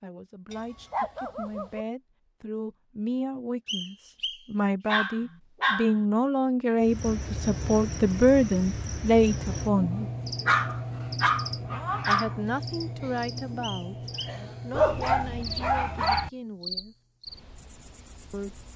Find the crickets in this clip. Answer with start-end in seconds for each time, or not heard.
6.8-18.7.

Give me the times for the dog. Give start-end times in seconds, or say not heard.
0.5-1.9, 4.8-6.0, 10.4-12.3, 14.7-16.3.